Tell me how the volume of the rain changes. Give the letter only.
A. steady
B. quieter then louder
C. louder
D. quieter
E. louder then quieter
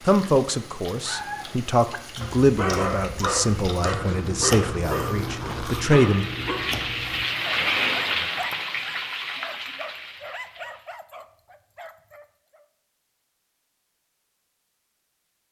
E.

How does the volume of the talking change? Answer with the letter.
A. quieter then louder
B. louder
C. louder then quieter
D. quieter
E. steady
C.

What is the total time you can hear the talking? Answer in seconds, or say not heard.
6 s.